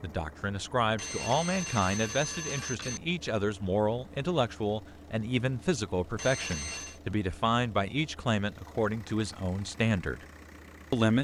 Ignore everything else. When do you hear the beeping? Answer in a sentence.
You can hear the beeping from 0.9 to 3.0 s and from 6.2 to 7.0 s.